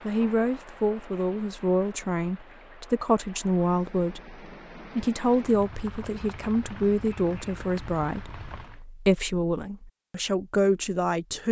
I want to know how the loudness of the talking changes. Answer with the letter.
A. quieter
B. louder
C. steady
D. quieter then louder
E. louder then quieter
C.